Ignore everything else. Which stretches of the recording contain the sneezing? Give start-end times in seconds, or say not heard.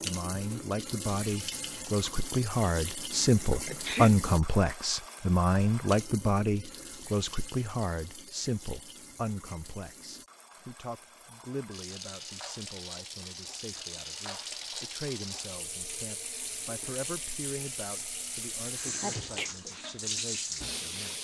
3.6-4.2, 19.0-19.5.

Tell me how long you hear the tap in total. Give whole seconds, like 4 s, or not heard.
21 s.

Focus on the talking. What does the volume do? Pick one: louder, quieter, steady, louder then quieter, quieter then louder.
quieter.